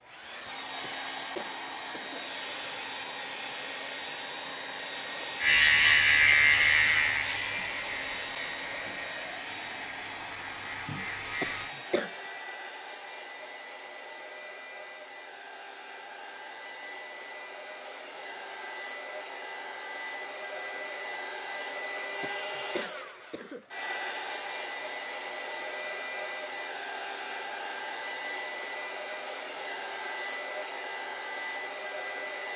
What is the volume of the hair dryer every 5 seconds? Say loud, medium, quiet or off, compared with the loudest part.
loud, loud, medium, medium, loud, loud, loud.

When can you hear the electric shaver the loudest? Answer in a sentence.
The volume of the electric shaver peaks at 6 seconds.